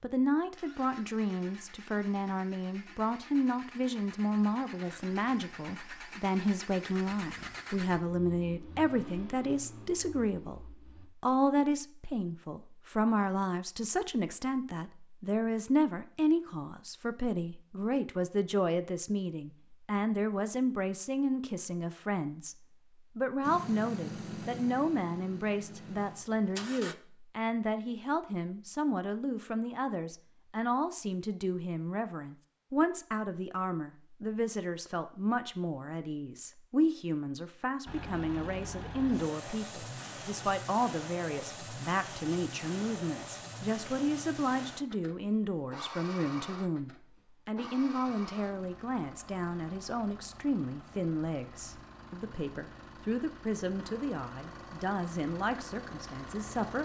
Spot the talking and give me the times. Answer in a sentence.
You can hear the talking from 0.0 to 56.8 s.